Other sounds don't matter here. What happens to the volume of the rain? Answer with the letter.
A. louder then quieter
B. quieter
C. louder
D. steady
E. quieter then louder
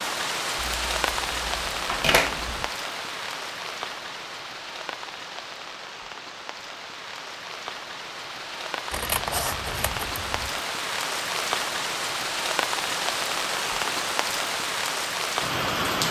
E.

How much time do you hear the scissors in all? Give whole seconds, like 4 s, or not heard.
4 s.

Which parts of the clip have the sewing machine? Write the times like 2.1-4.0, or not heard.
not heard.